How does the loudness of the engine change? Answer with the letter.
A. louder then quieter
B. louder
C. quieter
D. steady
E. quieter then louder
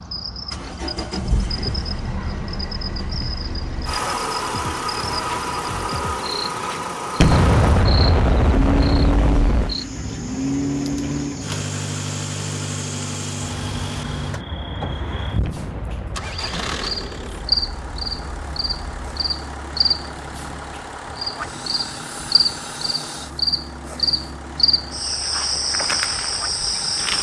C.